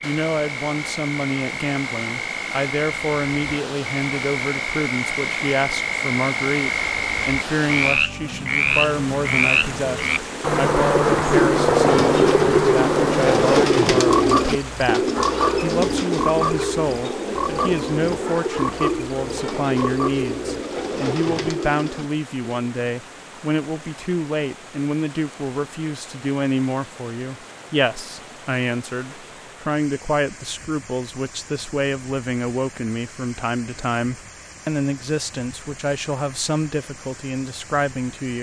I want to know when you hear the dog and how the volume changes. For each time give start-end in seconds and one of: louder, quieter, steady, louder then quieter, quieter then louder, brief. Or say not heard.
not heard.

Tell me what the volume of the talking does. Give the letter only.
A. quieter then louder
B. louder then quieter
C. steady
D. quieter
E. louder
C.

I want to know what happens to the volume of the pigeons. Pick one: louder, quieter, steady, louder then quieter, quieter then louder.
quieter.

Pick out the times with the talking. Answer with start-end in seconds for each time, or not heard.
0.0-38.3.